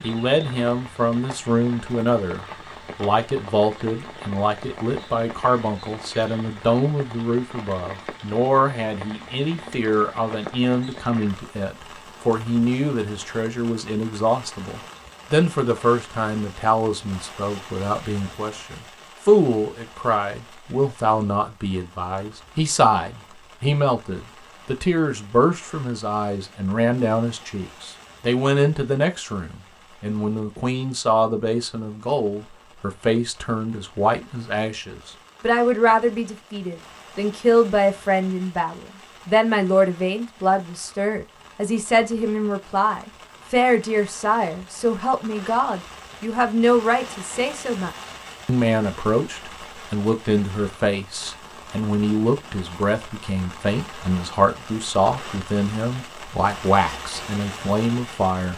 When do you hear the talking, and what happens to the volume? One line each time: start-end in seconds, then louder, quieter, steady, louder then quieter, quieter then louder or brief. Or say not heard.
0.0-58.5 steady.